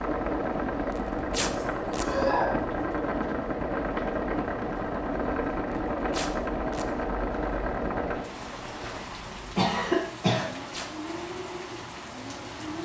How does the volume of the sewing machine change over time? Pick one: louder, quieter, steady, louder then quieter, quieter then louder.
quieter.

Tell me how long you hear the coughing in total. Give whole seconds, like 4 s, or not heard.
3 s.